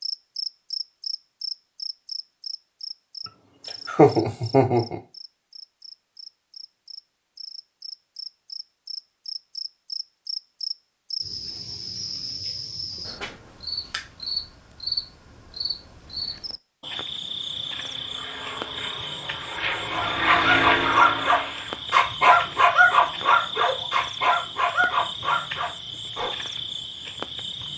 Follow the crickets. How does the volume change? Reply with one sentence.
The volume of the crickets stays about the same.